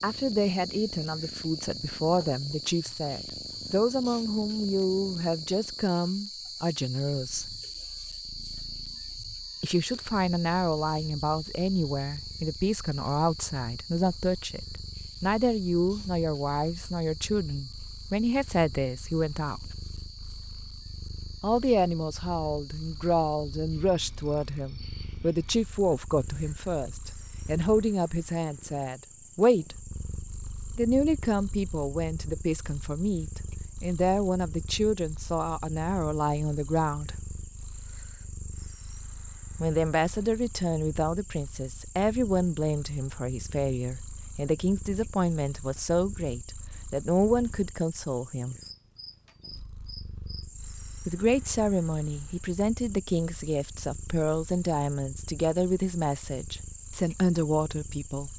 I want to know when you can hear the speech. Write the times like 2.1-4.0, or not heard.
0.0-7.5, 9.6-19.7, 21.4-29.8, 30.8-37.1, 39.6-48.6, 51.0-58.3.